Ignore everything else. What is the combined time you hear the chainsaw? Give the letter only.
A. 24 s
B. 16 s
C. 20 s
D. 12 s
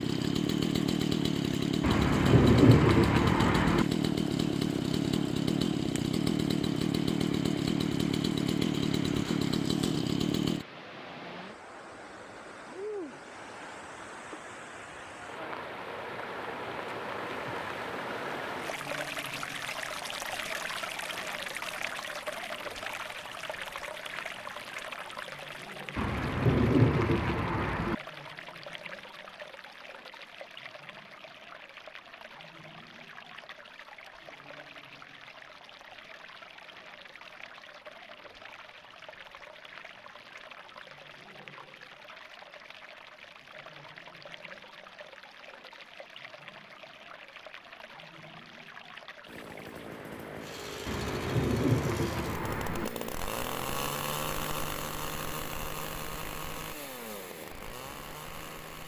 C.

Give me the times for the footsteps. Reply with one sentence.
You can't hear the footsteps here.